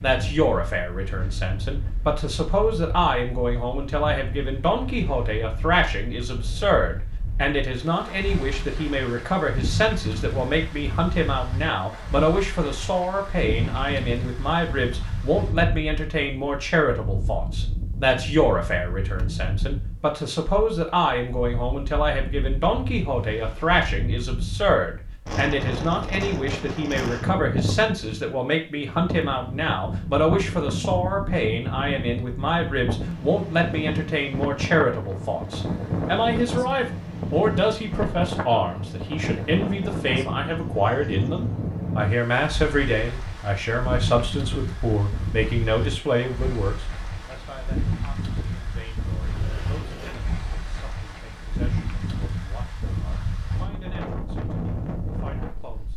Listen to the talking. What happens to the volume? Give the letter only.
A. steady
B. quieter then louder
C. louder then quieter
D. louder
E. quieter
E.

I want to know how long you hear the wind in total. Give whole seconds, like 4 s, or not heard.
56 s.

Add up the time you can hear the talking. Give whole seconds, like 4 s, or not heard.
56 s.